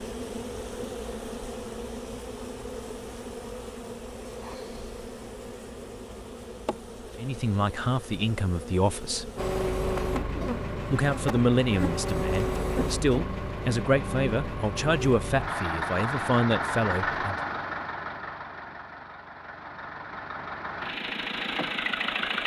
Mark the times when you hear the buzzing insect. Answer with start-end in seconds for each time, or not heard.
0.0-12.9.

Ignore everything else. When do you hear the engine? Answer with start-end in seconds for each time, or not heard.
9.3-22.4.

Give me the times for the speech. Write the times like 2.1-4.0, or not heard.
7.2-9.3, 10.9-17.4.